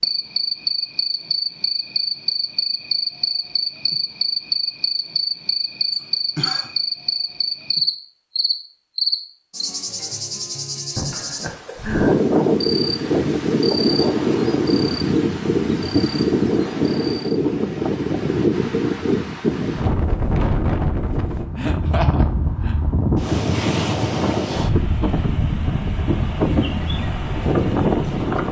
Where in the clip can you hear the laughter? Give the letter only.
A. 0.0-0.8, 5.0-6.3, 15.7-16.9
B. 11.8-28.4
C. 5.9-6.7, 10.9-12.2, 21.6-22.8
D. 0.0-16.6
C.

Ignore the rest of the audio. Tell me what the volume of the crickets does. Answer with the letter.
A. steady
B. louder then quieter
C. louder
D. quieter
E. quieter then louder
D.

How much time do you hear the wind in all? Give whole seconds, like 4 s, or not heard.
17 s.